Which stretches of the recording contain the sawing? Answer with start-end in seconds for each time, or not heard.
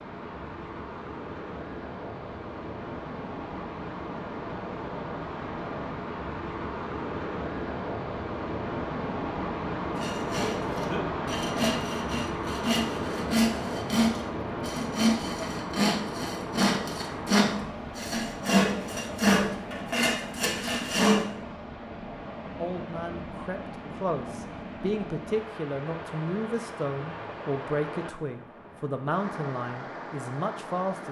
9.9-21.2.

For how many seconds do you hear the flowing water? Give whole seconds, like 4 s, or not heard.
31 s.